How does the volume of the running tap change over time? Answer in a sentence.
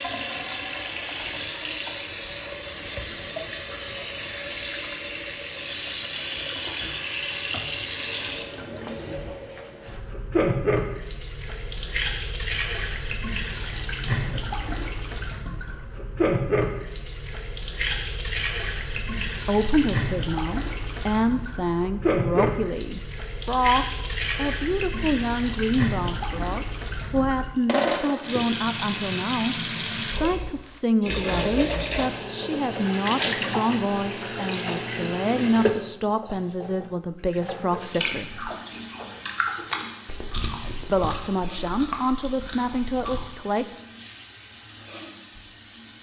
The loudness of the running tap goes down.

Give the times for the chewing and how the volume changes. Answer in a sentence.
The chewing can be heard from 37.9 to 43.3 s, getting louder then quieter.